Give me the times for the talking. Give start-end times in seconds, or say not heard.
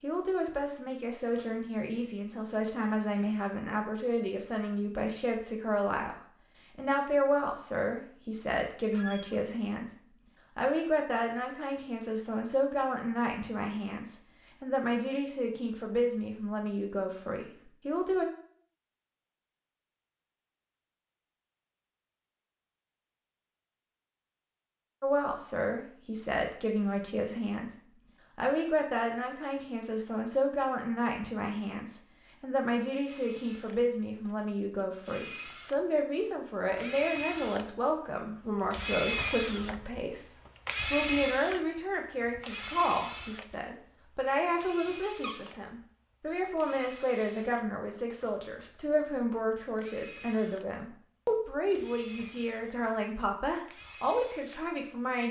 0.0-9.9, 10.6-18.2, 25.0-27.8, 28.4-55.2.